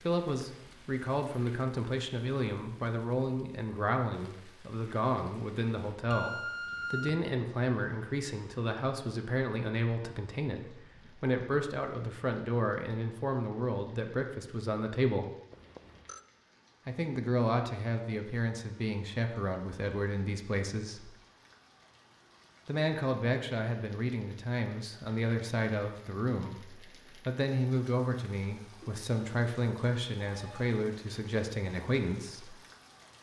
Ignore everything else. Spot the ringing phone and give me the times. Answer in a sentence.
The ringing phone can be heard from 6.1 to 7.2 s, from 15.5 to 16.2 s and from 30.2 to 30.8 s.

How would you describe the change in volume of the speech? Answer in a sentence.
The volume of the speech stays about the same.